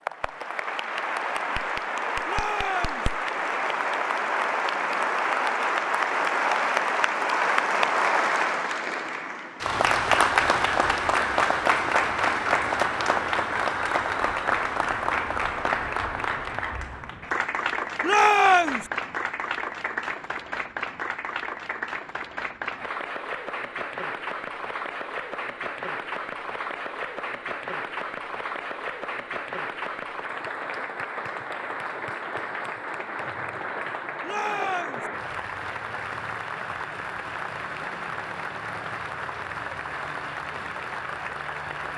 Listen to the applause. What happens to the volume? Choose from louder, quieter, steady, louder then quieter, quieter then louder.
quieter.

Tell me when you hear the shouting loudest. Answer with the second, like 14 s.
18 s.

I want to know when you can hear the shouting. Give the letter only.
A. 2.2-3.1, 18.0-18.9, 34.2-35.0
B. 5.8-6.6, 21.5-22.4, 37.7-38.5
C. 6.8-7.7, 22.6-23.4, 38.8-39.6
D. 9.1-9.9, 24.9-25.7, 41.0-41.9
A.